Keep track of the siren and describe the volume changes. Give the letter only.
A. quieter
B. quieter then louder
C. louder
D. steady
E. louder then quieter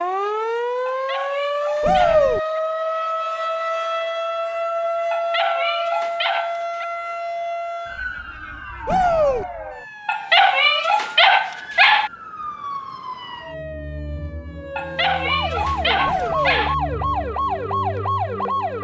B.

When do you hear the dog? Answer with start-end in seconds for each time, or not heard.
0.8-2.6, 5.1-6.8, 10.1-12.1, 14.8-16.8.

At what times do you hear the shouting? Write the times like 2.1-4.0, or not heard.
1.8-2.4, 8.8-9.4, 16.1-16.6.